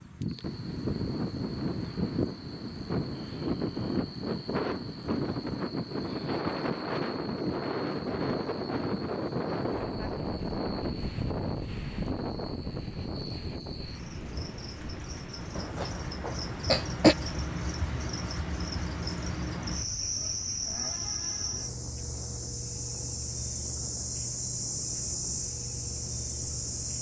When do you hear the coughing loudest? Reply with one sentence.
The volume of the coughing peaks at 17 seconds.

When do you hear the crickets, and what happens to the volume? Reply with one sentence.
The crickets can be heard from 0.1 to 26.9 s, getting louder.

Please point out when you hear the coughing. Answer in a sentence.
You can hear the coughing from 15.6 to 17.1 s.